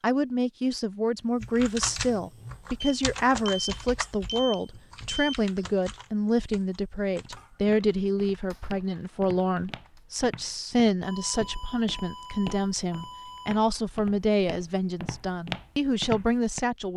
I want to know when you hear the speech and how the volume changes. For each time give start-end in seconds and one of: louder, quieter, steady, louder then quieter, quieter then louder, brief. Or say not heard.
0.0-16.9 steady.